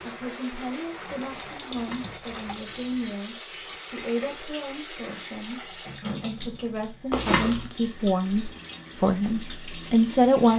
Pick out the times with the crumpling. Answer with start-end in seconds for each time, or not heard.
1.6-3.1, 7.1-7.7.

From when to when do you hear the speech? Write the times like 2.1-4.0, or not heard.
0.0-10.5.